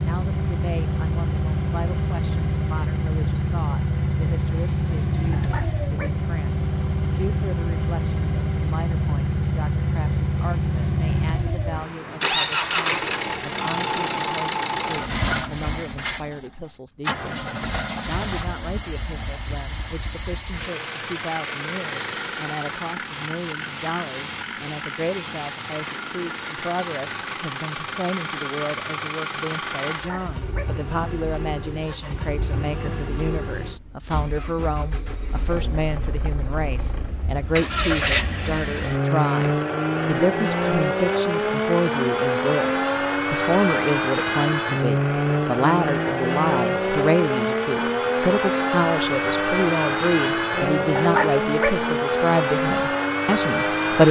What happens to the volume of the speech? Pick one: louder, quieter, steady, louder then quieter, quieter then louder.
louder.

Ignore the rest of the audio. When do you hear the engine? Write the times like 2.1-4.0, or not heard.
0.0-54.0.